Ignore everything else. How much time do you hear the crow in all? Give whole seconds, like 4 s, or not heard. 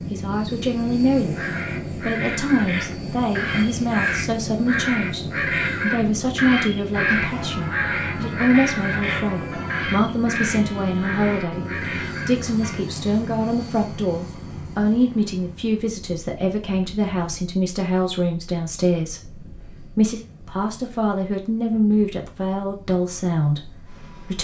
11 s.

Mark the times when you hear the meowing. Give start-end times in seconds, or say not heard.
not heard.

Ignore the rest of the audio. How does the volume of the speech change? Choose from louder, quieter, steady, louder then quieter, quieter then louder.
steady.